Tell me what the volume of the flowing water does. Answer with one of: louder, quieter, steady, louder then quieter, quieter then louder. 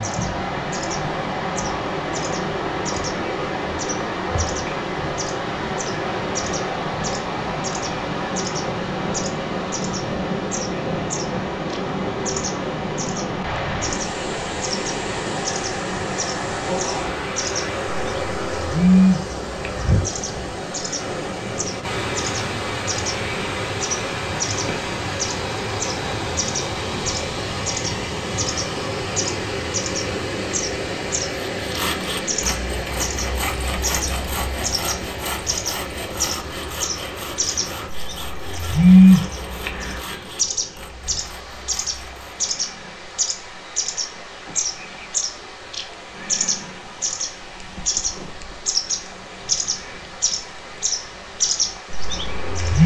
quieter.